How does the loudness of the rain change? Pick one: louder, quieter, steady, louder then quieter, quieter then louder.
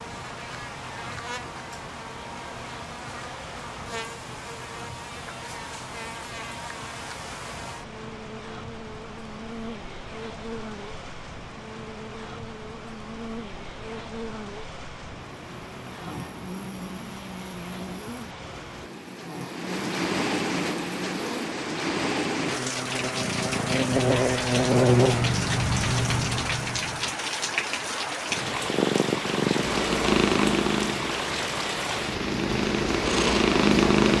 louder.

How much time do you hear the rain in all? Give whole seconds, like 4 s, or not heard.
34 s.